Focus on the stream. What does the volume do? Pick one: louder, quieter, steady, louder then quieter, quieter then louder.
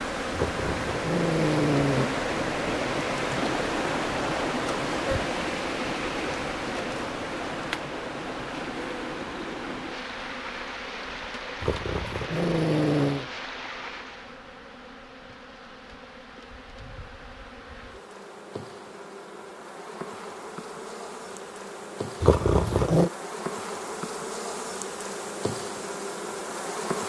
quieter.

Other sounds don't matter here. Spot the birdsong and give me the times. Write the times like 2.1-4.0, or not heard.
not heard.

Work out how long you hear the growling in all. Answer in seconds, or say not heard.
4 s.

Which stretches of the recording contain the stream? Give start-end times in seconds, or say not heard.
0.0-14.4.